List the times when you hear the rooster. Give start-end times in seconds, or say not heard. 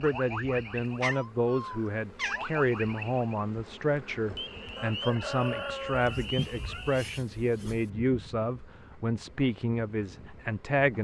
4.8-6.2.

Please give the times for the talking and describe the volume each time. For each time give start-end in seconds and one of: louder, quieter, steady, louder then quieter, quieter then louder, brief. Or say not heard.
0.0-10.9 steady.